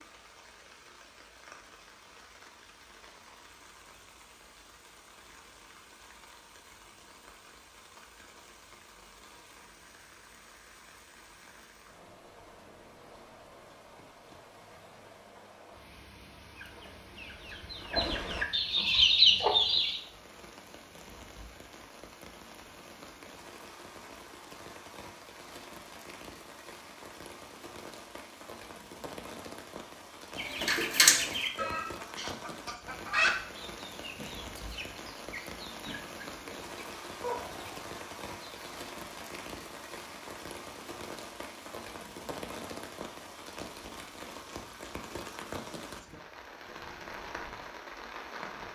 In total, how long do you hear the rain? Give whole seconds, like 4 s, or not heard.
49 s.